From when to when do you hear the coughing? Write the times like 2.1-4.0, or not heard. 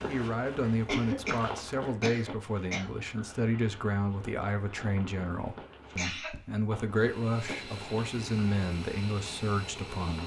0.8-2.9, 5.9-6.3.